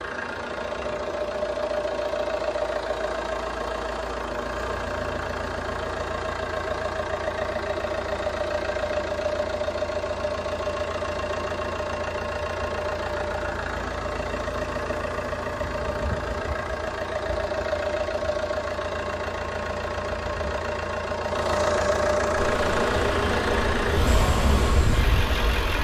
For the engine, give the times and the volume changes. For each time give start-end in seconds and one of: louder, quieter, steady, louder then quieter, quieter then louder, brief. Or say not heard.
0.0-25.7 steady.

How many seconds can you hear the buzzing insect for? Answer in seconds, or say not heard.
3 s.